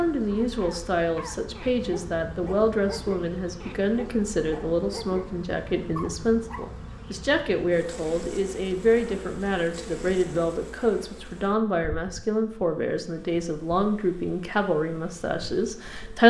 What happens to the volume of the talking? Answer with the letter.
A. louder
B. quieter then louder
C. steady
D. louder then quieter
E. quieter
C.